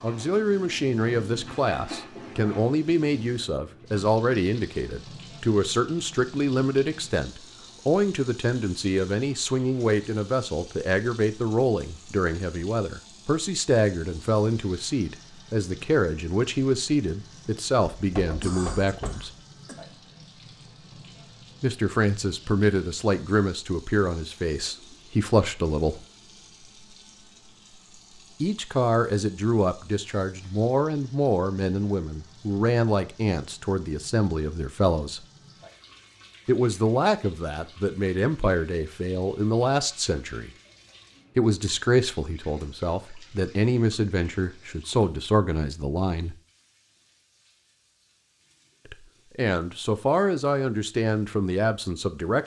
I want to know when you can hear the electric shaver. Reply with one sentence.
The electric shaver can't be heard in this clip.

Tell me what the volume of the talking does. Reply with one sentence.
The volume of the talking stays about the same.